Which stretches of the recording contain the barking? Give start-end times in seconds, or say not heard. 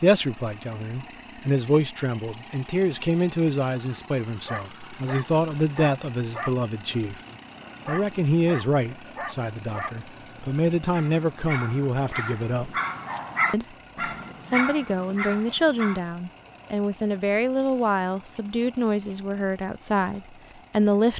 4.5-16.0.